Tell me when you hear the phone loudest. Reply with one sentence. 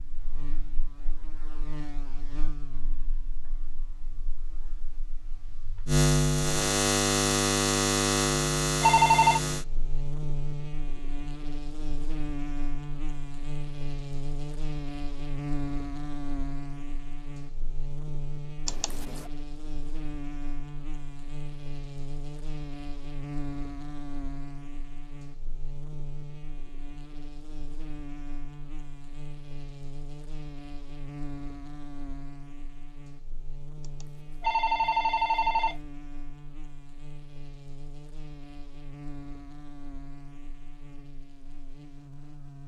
The volume of the phone peaks at 9 seconds.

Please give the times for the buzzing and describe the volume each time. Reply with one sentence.
The buzzing can be heard from 0.0 to 42.6 s, getting quieter.